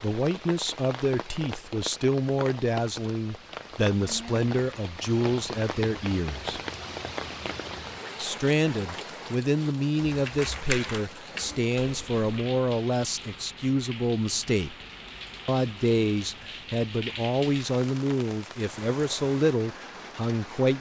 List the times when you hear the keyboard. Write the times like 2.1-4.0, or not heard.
9.9-12.4.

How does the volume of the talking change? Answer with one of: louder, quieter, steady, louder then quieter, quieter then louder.
steady.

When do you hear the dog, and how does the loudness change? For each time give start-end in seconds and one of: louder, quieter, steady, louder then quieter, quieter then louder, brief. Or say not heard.
not heard.